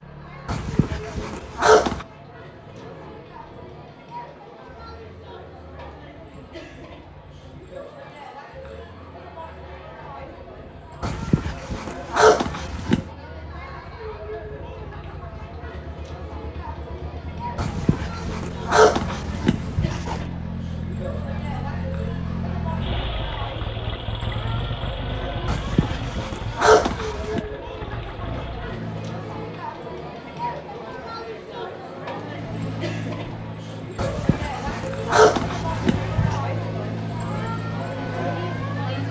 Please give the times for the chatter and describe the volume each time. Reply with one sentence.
You can hear the chatter from 0.0 to 39.0 s, getting louder.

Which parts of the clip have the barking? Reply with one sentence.
The barking can be heard from 0.5 to 2.0 s, from 11.0 to 13.1 s, from 17.6 to 20.2 s, from 25.4 to 27.4 s and from 34.0 to 36.4 s.